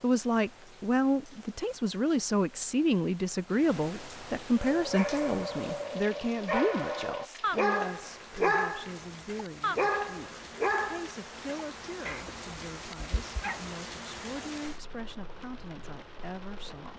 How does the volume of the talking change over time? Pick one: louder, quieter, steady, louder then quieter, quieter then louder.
quieter.